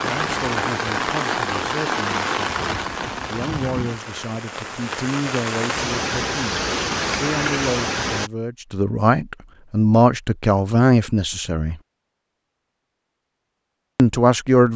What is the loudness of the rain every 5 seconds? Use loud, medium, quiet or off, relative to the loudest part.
loud, loud, off.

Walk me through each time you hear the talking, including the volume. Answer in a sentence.
The talking can be heard from 0.0 to 11.8 s, getting louder; and briefly from 13.9 to 14.7 s.